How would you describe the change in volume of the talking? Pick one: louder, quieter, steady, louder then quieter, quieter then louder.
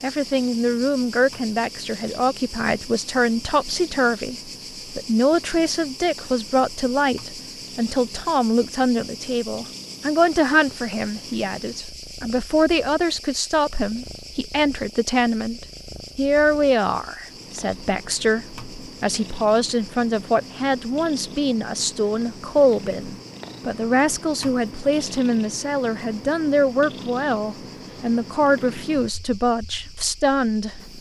steady.